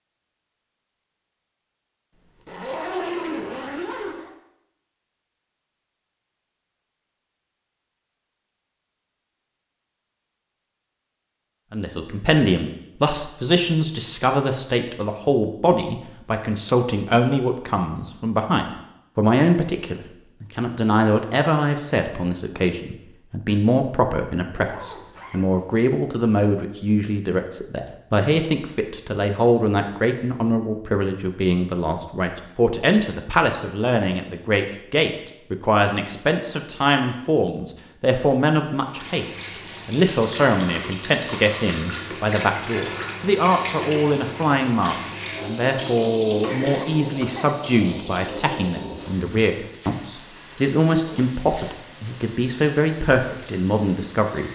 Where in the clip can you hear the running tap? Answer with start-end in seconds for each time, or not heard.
38.8-54.4.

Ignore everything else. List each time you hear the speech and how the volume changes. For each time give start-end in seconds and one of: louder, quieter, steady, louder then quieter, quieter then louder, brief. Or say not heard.
11.7-54.4 steady.